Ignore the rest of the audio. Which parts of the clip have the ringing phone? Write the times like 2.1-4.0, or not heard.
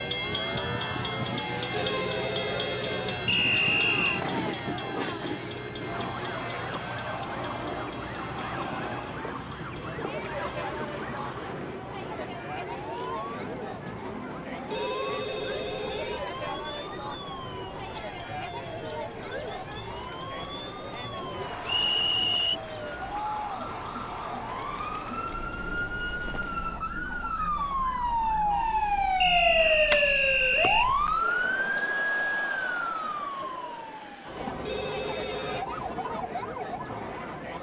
1.7-3.2, 14.7-16.2, 34.6-35.6.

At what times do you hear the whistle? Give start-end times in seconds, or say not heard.
3.2-4.2, 21.6-22.6, 29.2-30.9.